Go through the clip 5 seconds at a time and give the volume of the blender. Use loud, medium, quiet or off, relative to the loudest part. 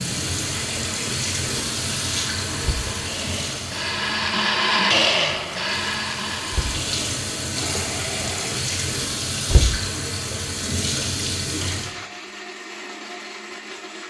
loud, loud, medium.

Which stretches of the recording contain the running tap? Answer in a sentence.
The running tap can be heard from 0.0 to 11.9 s.